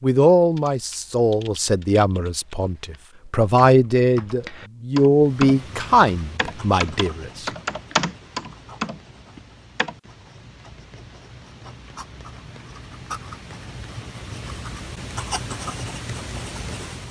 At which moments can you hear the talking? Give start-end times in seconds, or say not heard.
0.0-7.5.